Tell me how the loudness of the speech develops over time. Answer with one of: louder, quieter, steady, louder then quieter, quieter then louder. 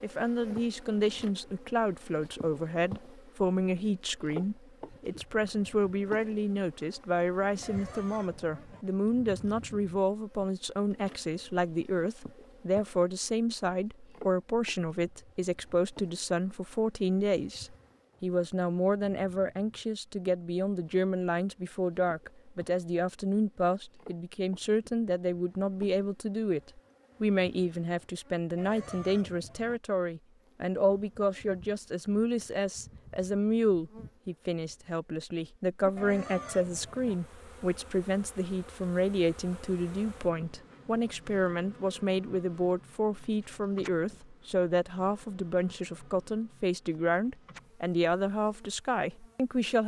steady.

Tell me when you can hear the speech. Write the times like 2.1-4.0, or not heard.
0.0-49.8.